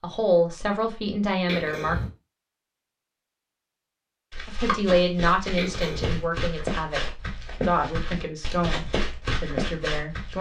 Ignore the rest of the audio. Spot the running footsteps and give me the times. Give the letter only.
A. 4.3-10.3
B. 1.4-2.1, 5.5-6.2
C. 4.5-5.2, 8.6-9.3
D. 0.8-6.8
A.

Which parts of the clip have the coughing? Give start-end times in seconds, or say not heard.
1.4-2.1, 5.5-6.2.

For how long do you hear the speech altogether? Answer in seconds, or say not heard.
8 s.